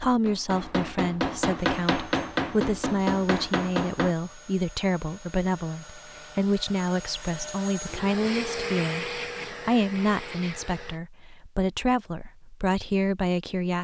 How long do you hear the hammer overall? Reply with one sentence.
The hammer can be heard for 4 seconds in total.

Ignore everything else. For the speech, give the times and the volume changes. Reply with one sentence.
The speech can be heard from 0.0 to 13.7 s, at a steady volume.